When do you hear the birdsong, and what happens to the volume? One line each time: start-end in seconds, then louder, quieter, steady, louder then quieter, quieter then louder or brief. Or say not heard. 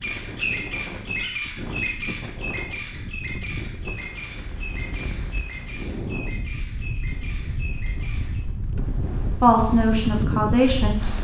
0.0-8.4 quieter.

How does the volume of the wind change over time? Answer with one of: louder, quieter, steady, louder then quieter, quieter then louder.
louder.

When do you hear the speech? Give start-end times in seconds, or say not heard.
9.4-11.0.